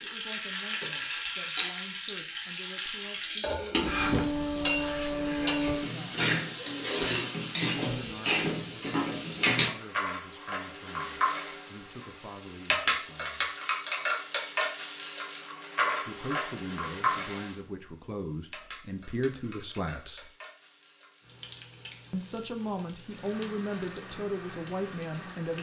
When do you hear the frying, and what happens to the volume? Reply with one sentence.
The frying can be heard from 0.0 to 25.5 s, getting quieter.